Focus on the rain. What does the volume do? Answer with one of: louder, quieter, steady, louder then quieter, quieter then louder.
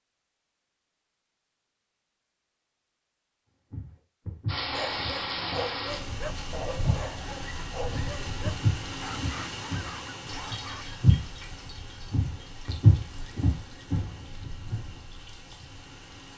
quieter.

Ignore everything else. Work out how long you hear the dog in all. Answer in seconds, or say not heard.
6 s.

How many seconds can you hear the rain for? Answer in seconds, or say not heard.
12 s.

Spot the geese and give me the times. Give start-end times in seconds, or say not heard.
not heard.